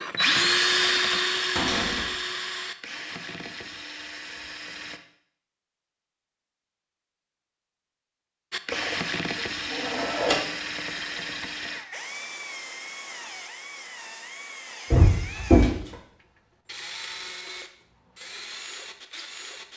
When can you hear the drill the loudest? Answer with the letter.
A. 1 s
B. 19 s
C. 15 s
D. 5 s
A.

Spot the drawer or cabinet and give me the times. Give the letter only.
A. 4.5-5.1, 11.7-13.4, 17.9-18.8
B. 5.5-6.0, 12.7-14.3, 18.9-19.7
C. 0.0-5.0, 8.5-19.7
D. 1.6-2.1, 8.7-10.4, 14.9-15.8
D.